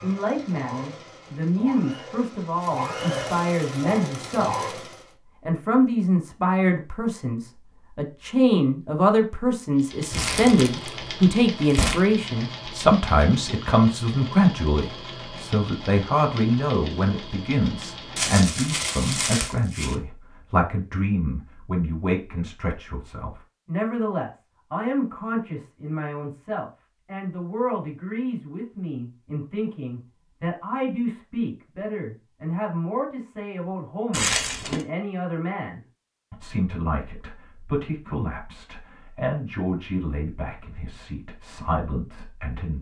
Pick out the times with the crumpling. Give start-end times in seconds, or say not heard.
10.1-12.0, 18.1-19.9, 34.1-34.9.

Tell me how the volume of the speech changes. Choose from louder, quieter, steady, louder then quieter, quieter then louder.
quieter.